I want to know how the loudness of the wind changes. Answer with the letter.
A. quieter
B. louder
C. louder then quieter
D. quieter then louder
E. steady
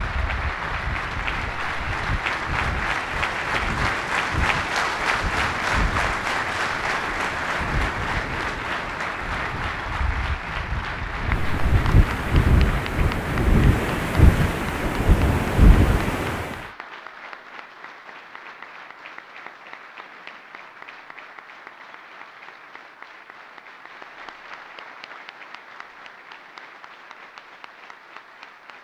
B.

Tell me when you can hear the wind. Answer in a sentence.
You can hear the wind from 0.0 to 16.6 s.